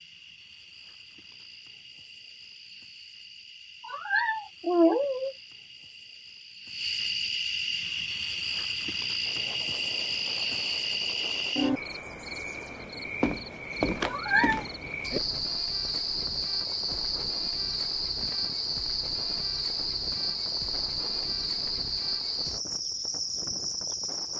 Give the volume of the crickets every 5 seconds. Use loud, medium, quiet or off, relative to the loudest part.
quiet, loud, loud, loud, loud.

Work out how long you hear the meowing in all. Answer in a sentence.
The meowing can be heard for 2 seconds in total.